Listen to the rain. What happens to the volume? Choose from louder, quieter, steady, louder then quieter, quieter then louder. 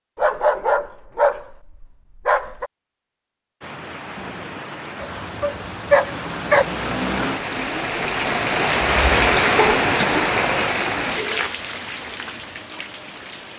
louder then quieter.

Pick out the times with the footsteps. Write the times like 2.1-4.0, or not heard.
not heard.